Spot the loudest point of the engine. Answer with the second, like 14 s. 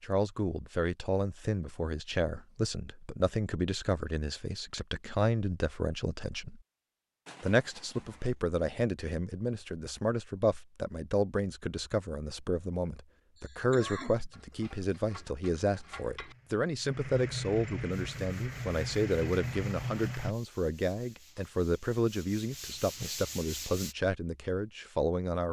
20 s.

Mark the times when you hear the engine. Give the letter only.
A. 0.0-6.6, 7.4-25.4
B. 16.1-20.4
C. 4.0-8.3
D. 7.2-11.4
B.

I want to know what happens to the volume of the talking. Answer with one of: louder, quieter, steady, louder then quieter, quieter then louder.
steady.